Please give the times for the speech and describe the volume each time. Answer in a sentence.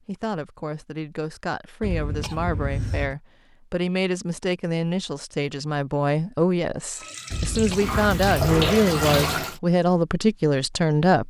The speech can be heard from 0.1 to 11.2 s, getting louder.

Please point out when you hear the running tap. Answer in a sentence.
You can hear the running tap from 6.9 to 9.6 s.